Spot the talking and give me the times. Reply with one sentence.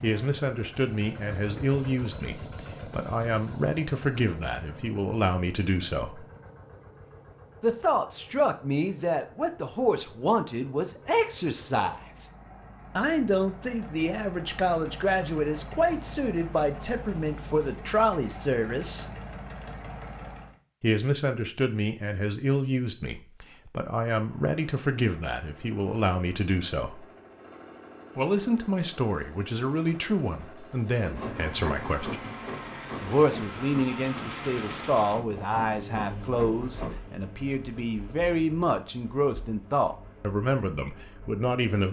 The talking can be heard from 0.0 to 6.2 s, from 7.6 to 12.2 s, from 12.9 to 19.1 s, from 20.8 to 27.1 s, from 28.1 to 32.2 s and from 33.0 to 41.8 s.